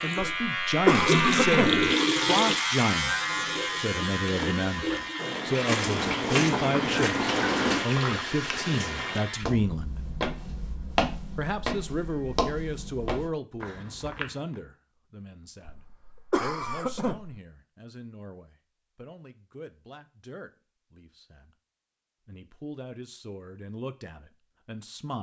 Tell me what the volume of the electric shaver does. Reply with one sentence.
The volume of the electric shaver goes down.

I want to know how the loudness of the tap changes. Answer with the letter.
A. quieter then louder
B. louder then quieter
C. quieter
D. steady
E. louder
A.